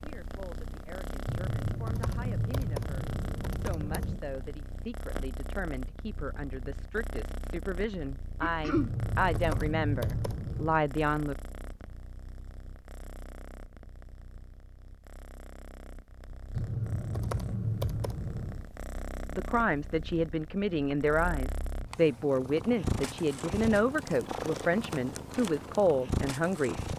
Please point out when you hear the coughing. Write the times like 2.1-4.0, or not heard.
8.4-8.9.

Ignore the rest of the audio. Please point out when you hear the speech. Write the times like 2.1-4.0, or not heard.
0.0-11.3, 19.3-26.8.